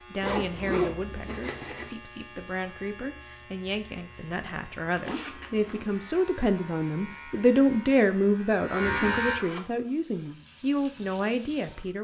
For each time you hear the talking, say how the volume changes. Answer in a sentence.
You can hear the talking from 0.0 to 11.9 s, getting louder then quieter.